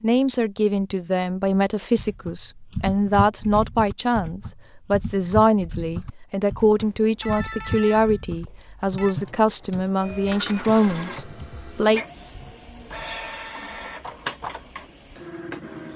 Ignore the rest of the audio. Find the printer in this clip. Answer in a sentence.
The printer can be heard from 9.9 to 15.9 s.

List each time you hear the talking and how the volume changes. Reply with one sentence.
You can hear the talking from 0.0 to 12.0 s, at a steady volume.